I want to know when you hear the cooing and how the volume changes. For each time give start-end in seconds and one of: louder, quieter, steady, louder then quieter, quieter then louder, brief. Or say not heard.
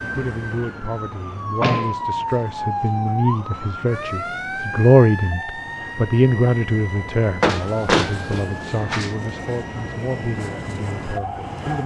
not heard.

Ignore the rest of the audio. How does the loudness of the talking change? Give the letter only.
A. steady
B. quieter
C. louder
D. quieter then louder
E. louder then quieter
E.